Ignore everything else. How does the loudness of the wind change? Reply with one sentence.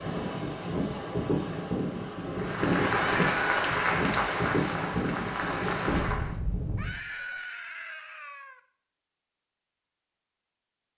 The volume of the wind stays about the same.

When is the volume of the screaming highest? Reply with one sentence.
The volume of the screaming peaks at 3 seconds.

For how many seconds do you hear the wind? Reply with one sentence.
You can hear the wind for 7 seconds altogether.